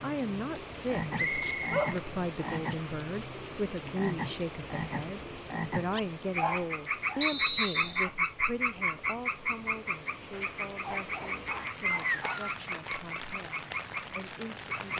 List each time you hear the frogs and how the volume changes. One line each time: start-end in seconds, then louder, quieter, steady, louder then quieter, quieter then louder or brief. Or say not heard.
0.0-14.9 louder then quieter.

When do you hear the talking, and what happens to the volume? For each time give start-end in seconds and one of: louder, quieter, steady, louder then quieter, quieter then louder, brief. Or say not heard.
0.0-14.9 quieter.